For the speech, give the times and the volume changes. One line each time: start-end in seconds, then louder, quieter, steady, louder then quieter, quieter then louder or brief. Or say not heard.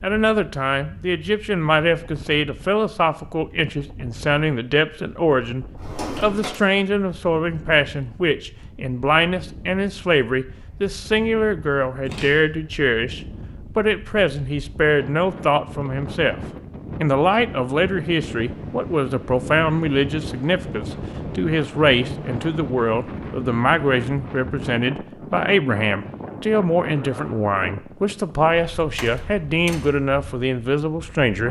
0.0-16.4 steady
17.0-31.4 steady.